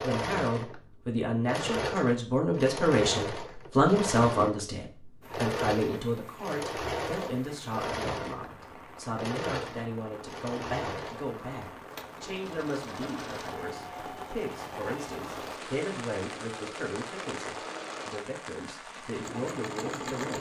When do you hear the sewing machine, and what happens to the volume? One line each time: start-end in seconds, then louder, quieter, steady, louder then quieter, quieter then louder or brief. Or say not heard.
0.0-20.3 quieter.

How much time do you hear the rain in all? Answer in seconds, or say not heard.
15 s.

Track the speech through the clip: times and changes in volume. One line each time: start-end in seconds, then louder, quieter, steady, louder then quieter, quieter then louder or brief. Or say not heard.
0.0-20.3 quieter.